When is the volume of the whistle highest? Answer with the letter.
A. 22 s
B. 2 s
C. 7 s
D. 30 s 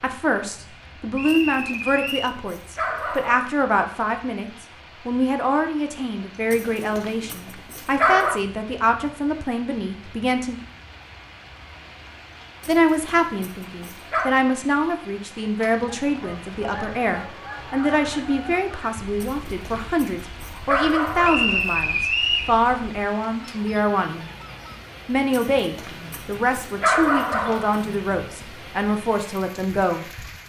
A.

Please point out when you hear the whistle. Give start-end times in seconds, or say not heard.
1.1-2.3, 21.2-22.5.